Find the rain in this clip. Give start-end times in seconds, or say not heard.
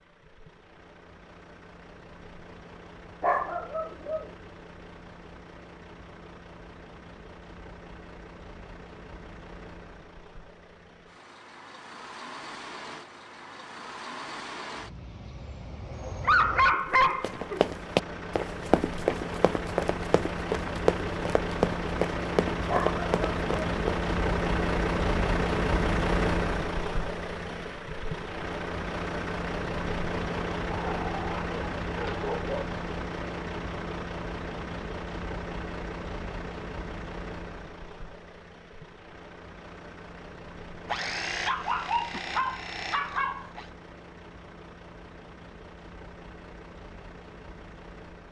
not heard.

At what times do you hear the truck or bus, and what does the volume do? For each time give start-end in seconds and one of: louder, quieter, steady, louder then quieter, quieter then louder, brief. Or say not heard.
0.0-48.2 louder then quieter.